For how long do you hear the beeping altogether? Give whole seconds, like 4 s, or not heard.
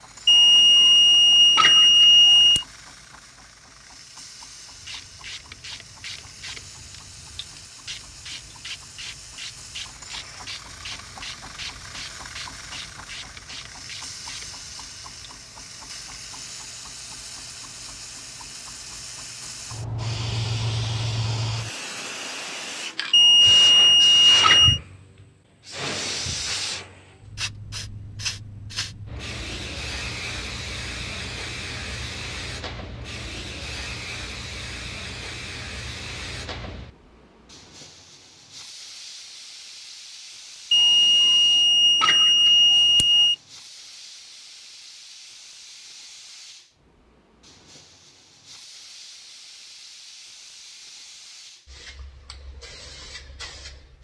7 s.